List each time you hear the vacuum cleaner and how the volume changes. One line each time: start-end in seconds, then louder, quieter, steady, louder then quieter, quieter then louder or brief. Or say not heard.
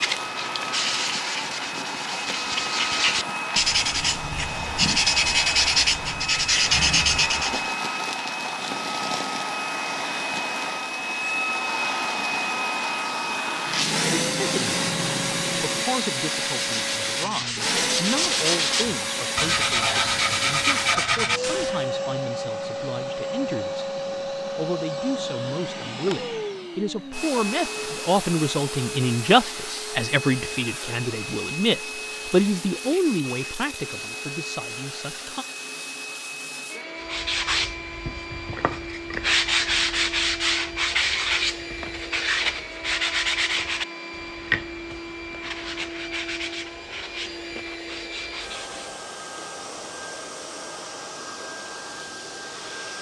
0.0-52.9 quieter.